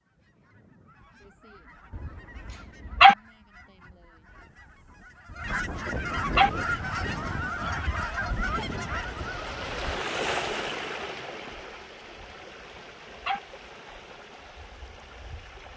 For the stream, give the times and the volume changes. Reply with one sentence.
The stream can be heard from 6.3 to 15.7 s, getting louder then quieter.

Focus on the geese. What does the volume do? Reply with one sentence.
The volume of the geese goes up.